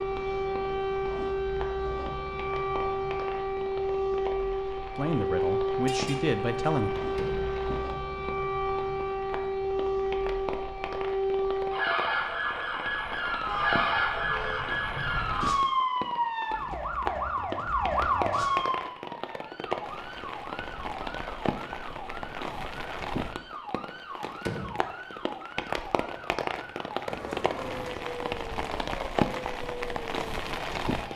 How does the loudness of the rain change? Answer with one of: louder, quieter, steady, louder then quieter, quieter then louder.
louder.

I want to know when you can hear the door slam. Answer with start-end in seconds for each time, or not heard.
7.0-7.5, 24.2-24.9.